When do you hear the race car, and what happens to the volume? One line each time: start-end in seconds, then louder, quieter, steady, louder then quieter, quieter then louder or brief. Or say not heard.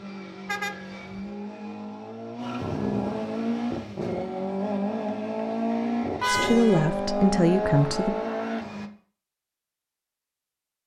0.0-8.9 louder.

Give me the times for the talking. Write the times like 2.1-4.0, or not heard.
6.2-8.2.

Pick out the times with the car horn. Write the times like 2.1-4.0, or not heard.
0.5-1.3, 6.2-6.9.